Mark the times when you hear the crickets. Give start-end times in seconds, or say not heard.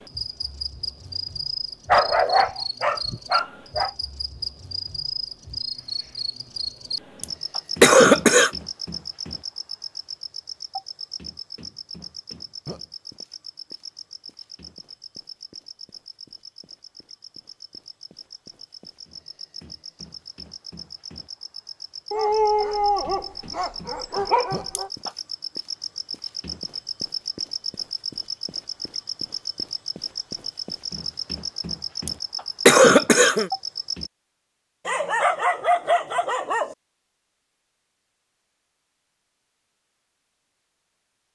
0.0-34.1.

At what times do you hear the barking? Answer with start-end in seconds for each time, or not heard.
1.9-3.9, 22.1-24.9, 34.9-36.8.